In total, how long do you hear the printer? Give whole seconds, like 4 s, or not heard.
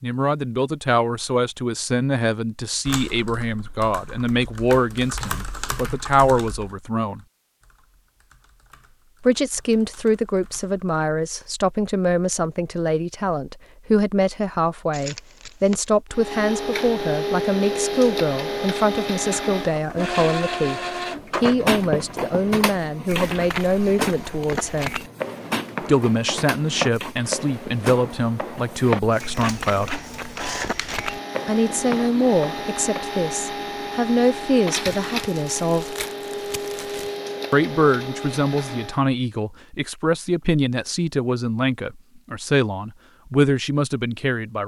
23 s.